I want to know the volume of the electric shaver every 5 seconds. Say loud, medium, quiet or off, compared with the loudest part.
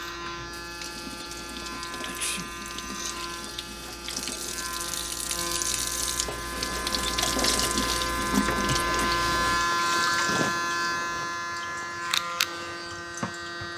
medium, loud, loud.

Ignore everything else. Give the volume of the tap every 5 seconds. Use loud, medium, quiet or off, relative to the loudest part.
medium, loud, medium.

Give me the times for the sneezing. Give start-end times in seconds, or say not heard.
2.0-2.5.